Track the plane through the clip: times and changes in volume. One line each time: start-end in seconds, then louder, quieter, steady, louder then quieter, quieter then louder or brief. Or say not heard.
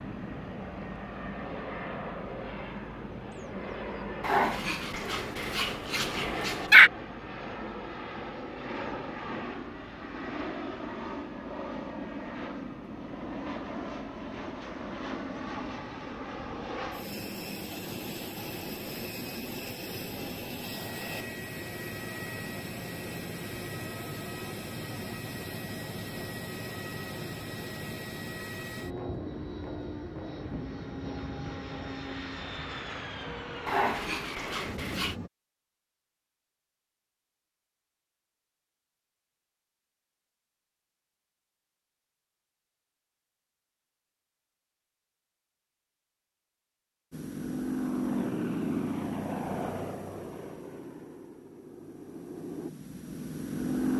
0.0-35.3 steady
47.1-53.9 quieter then louder.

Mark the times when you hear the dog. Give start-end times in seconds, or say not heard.
4.2-6.9, 33.6-35.1.